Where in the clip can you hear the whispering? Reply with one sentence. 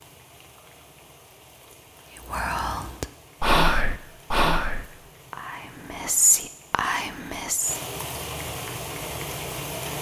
The whispering can be heard from 2.2 to 7.8 s.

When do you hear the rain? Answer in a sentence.
The rain can be heard from 0.0 to 9.9 s.